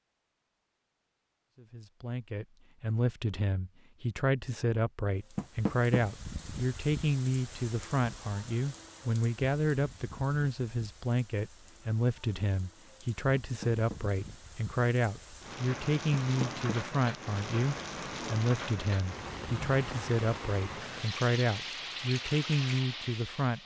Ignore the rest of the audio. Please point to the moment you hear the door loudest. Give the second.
6 s.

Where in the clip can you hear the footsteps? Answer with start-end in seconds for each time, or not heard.
not heard.